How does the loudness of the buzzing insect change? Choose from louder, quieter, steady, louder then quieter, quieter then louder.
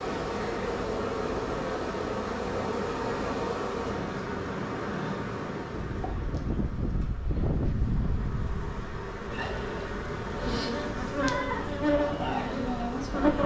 quieter then louder.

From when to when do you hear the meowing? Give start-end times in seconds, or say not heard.
11.2-11.8.